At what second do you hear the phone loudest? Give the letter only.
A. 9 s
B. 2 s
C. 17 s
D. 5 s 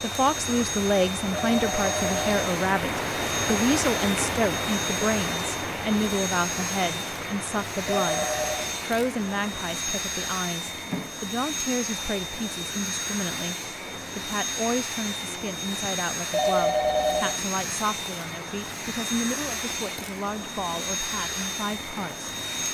C.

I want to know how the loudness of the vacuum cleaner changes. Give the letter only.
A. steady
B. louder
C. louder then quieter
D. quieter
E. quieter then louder
A.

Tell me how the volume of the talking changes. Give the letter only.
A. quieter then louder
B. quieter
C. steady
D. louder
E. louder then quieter
B.